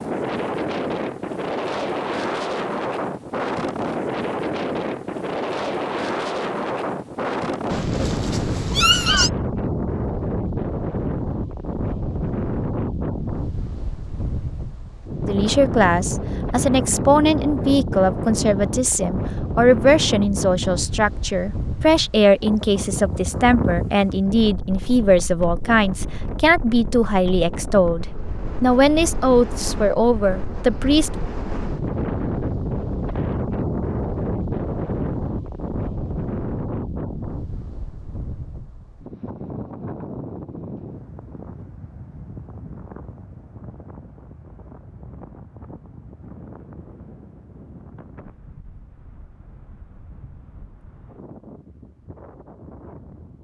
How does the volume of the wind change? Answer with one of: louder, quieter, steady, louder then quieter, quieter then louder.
quieter.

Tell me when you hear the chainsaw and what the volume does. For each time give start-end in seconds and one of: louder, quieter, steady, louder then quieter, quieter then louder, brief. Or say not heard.
not heard.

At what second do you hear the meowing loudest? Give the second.
9 s.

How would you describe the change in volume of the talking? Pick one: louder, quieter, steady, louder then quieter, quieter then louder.
steady.